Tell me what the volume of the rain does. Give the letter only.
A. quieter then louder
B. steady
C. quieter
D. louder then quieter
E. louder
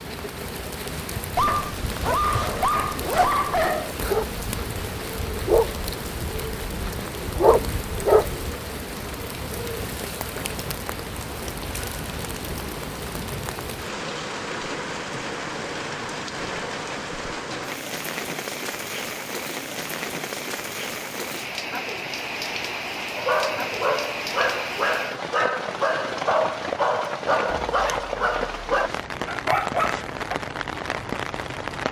B.